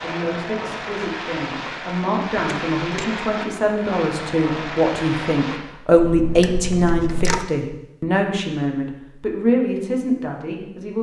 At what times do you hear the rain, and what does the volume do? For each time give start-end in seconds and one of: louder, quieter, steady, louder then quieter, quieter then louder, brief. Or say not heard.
0.0-5.6 steady.